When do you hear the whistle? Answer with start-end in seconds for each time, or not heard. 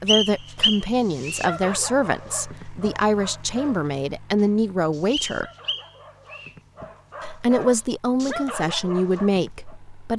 0.1-1.5, 5.1-6.5.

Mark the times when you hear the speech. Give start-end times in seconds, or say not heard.
0.0-5.5, 7.2-10.1.